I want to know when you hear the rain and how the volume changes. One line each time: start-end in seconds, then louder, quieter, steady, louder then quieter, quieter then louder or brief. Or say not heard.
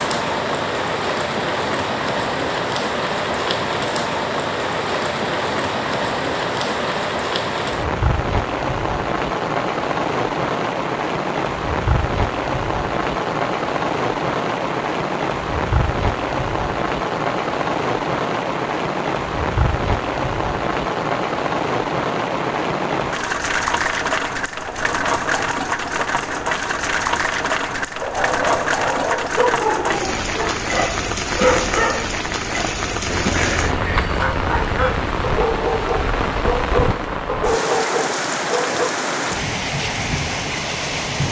0.0-41.2 steady.